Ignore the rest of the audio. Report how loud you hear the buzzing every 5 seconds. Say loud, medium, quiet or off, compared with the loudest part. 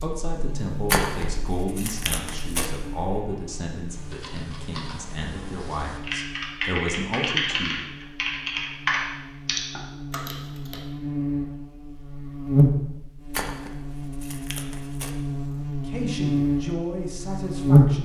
quiet, quiet, medium, loud.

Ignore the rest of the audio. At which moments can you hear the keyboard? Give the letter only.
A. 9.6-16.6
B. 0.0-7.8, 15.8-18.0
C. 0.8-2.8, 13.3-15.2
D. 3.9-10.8
D.